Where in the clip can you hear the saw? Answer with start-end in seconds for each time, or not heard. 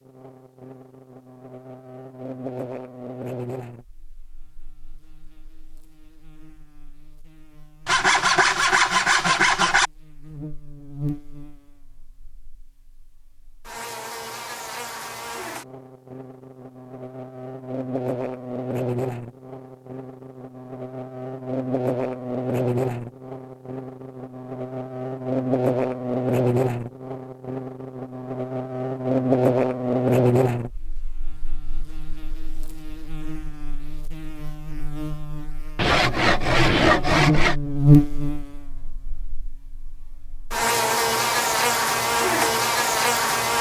7.8-9.9, 35.8-37.5.